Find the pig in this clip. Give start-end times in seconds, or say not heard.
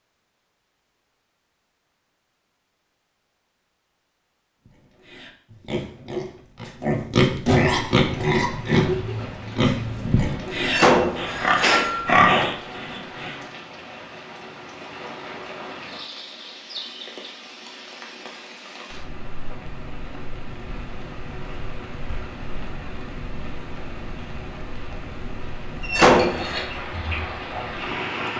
4.7-13.4.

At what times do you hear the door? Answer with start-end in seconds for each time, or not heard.
10.6-12.3, 25.8-26.6.